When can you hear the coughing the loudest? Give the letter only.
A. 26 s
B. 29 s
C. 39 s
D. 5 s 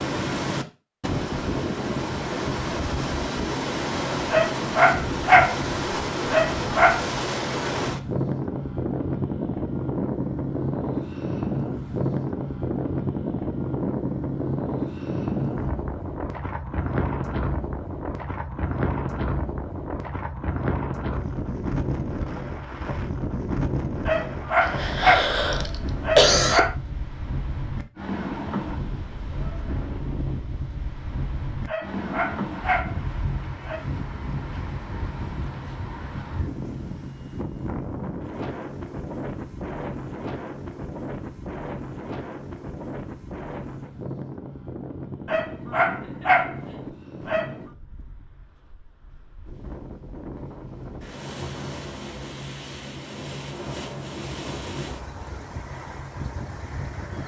A.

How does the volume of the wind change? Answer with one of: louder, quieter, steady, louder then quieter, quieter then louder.
quieter.